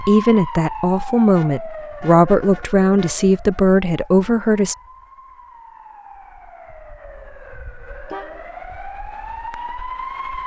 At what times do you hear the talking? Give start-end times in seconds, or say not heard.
0.1-4.8.